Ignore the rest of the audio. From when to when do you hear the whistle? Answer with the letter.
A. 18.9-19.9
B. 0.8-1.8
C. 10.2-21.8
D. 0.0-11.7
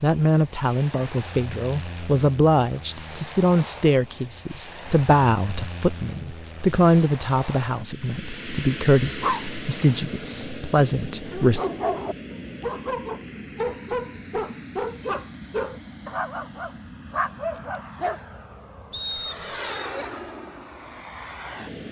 A.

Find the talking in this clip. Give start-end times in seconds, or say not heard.
0.0-11.7.